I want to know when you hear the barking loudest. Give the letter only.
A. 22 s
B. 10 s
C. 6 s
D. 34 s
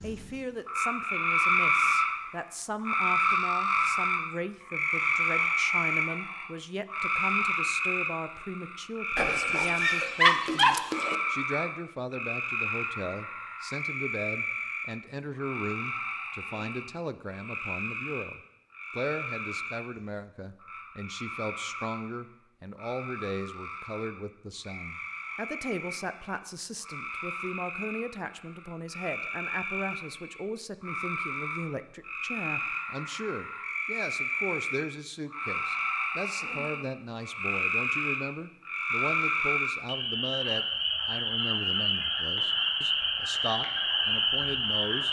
B.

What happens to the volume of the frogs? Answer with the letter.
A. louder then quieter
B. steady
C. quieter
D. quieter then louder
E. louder
D.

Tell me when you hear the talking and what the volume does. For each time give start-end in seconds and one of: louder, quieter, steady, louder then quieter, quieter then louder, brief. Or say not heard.
0.0-45.0 steady.